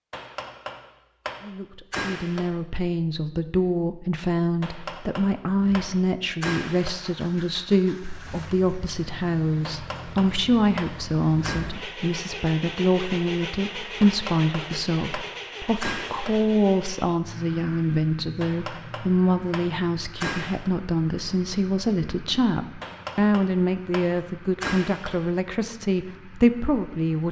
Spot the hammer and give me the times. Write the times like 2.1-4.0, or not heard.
0.1-2.5, 4.6-7.1, 9.6-11.7, 14.0-16.4, 18.4-20.7, 22.8-25.3.